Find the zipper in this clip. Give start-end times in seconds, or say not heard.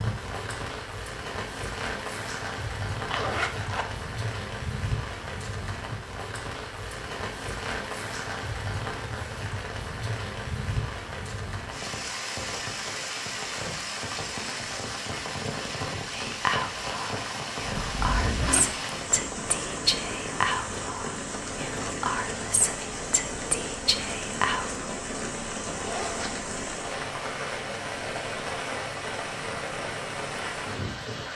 3.0-3.9, 17.7-18.8, 25.7-26.8.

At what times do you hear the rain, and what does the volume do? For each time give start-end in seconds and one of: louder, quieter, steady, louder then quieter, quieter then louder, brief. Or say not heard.
0.0-31.3 steady.